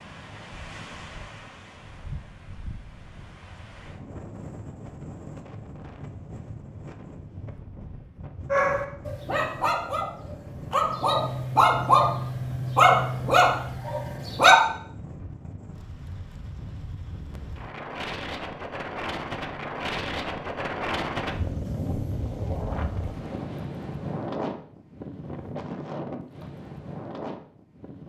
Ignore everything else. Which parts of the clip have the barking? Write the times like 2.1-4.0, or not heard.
8.5-14.6.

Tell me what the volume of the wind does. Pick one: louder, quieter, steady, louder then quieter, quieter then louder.
louder.